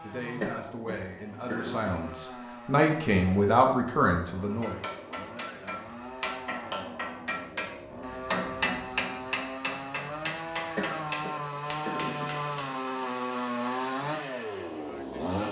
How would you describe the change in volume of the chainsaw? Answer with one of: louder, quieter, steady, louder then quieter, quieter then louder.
louder.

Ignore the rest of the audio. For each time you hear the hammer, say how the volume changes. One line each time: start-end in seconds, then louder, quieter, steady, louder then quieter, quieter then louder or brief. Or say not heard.
4.6-12.8 louder then quieter.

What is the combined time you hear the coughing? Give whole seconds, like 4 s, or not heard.
3 s.